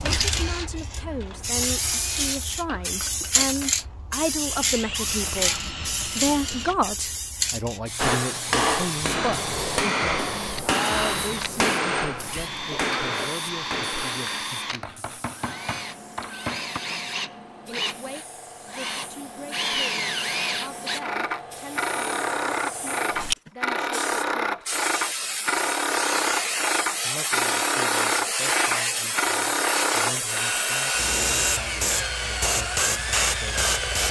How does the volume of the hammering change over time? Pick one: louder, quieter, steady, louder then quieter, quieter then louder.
quieter.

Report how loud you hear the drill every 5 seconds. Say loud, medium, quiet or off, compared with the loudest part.
quiet, medium, medium, medium, loud, loud, loud.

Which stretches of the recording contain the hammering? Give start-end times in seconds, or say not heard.
8.0-16.8.